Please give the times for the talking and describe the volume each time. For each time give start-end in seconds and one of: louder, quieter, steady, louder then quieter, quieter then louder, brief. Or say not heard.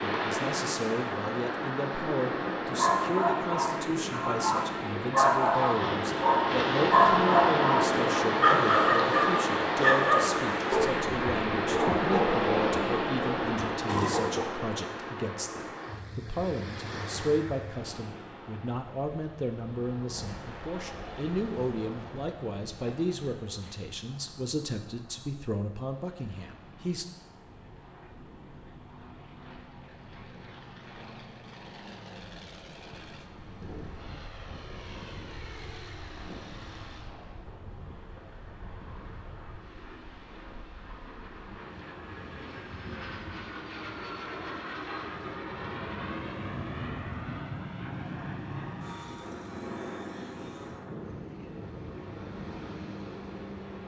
0.0-27.1 steady.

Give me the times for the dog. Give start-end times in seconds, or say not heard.
2.8-14.5.